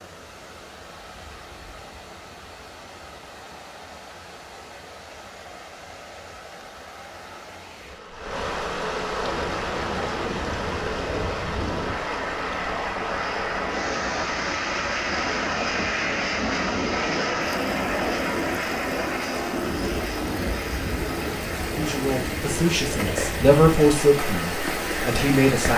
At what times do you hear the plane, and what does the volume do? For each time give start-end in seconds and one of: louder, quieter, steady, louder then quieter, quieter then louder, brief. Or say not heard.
9.2-25.6 louder then quieter.